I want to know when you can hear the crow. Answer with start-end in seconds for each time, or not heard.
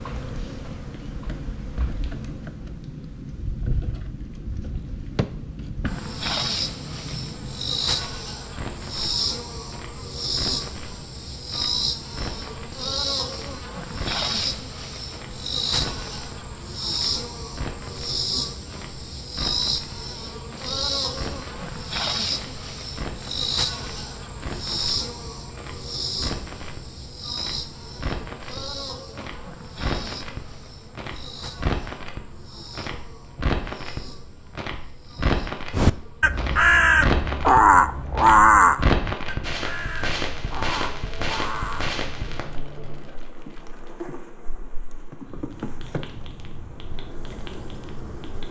35.7-42.0.